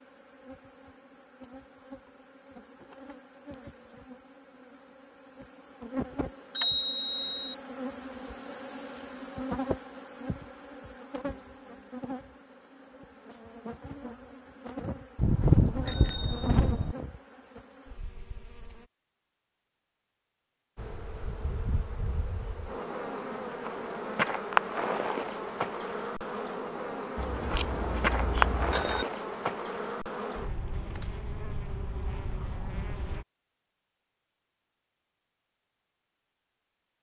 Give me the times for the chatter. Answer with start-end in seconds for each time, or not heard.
not heard.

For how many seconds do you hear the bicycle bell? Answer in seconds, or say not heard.
5 s.